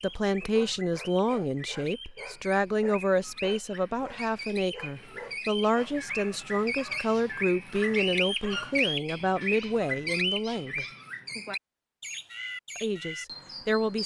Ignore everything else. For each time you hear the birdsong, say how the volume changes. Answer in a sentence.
You can hear the birdsong from 0.0 to 14.0 s, getting louder then quieter.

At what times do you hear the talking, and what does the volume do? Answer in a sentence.
The talking can be heard from 0.0 to 10.8 s, at a steady volume; and briefly from 12.8 to 14.0 s.